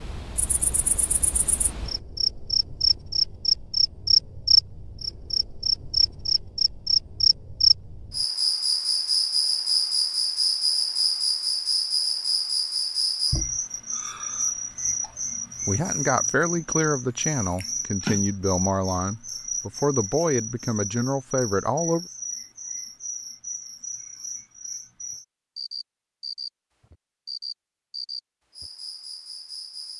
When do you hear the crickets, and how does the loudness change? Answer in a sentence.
You can hear the crickets from 0.0 to 29.9 s, getting quieter.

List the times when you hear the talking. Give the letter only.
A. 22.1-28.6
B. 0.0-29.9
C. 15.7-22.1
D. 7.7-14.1
C.